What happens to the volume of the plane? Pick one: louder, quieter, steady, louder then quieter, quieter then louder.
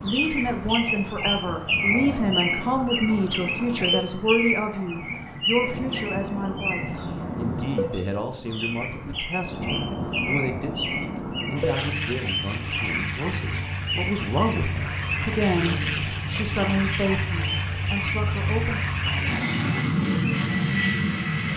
louder.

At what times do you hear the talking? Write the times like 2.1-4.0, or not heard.
0.0-18.8.